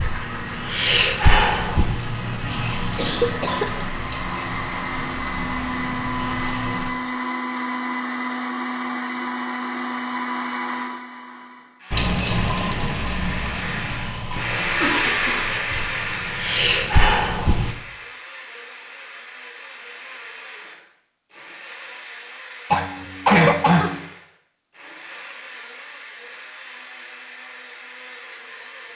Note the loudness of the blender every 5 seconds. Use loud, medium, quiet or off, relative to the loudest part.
medium, loud, loud, loud, quiet, quiet.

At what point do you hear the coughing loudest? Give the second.
23 s.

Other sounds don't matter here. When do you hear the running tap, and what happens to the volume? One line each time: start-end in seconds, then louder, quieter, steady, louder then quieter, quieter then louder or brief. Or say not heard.
0.0-6.9 quieter
11.9-17.8 quieter then louder.